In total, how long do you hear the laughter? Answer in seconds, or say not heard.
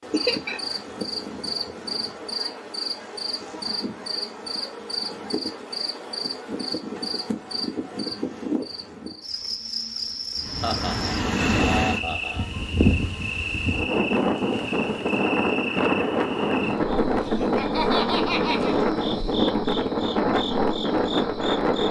4 s.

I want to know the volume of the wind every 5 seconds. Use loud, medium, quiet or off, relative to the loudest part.
off, off, loud, loud, loud.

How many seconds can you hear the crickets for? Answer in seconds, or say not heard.
22 s.